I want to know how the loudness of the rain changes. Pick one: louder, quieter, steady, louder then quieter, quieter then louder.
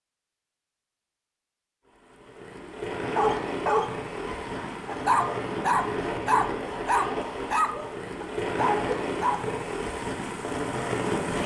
steady.